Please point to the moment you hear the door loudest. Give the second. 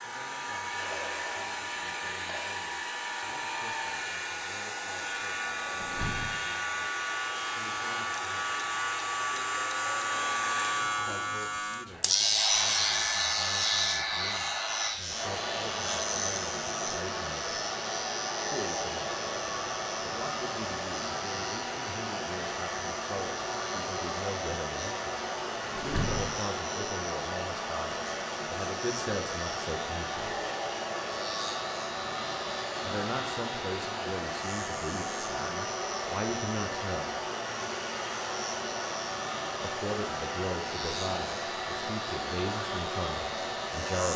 26 s.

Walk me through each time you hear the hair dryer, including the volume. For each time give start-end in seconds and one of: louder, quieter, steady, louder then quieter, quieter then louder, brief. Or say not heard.
0.0-44.1 steady.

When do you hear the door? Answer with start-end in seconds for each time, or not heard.
5.8-6.4, 25.7-26.4.